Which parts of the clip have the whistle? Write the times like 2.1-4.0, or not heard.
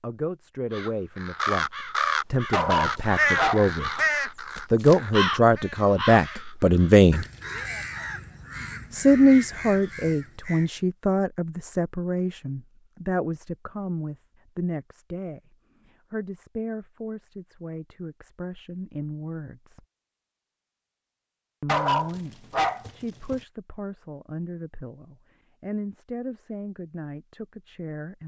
not heard.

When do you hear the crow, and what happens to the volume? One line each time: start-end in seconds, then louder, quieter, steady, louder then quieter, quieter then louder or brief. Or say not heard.
0.7-10.7 quieter.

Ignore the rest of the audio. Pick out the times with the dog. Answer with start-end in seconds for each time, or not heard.
2.5-3.8, 21.6-23.4.